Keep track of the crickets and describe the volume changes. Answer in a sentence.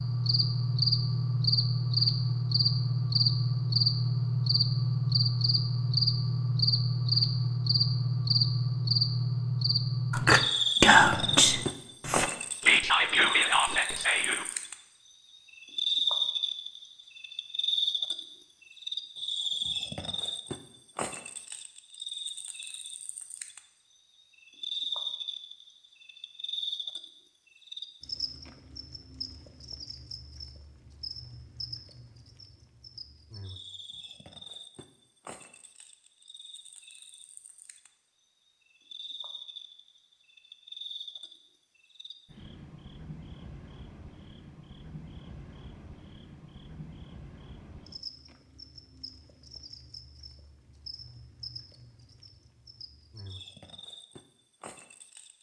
The volume of the crickets goes down.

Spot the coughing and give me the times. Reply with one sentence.
You can't hear the coughing here.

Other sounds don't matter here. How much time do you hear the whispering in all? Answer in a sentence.
You can hear the whispering for 4 seconds altogether.